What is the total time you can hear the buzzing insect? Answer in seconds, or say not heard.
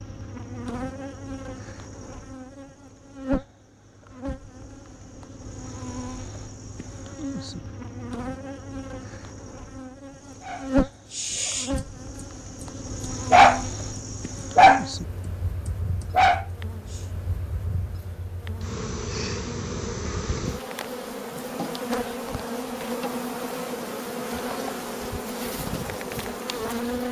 27 s.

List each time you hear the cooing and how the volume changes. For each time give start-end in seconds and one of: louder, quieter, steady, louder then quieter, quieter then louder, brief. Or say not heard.
not heard.